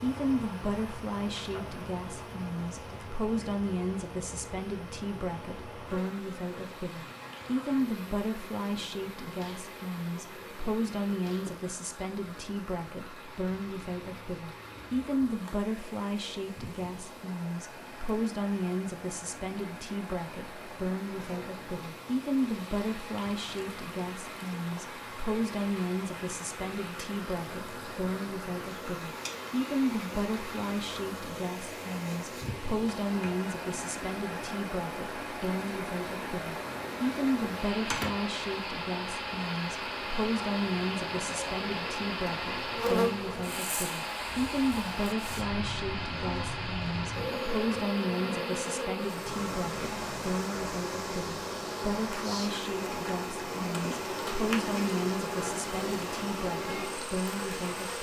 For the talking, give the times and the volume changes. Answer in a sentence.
You can hear the talking from 0.0 to 57.9 s, at a steady volume.